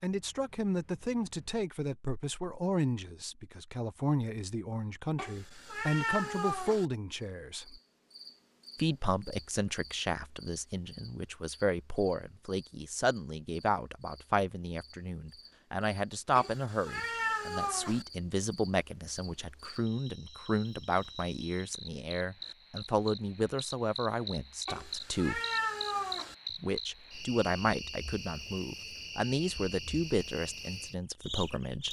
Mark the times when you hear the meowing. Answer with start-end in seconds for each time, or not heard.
5.2-6.8, 16.4-18.1, 24.6-26.4.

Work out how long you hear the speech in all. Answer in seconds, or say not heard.
30 s.